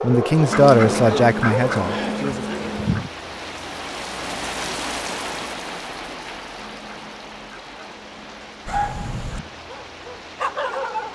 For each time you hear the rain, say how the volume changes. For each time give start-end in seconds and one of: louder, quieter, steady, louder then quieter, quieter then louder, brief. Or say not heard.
0.0-11.1 louder then quieter.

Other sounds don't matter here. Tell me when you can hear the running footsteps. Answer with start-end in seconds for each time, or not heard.
not heard.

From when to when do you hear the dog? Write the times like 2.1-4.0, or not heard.
0.0-1.9, 8.7-11.1.